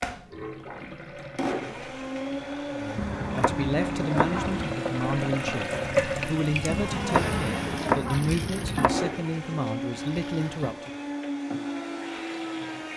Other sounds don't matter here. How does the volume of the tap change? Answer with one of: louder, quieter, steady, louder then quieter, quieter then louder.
louder then quieter.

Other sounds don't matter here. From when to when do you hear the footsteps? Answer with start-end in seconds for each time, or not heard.
not heard.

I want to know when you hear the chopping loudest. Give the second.
8 s.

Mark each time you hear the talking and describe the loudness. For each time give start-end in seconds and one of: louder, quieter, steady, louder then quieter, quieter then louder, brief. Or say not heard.
2.7-10.9 steady.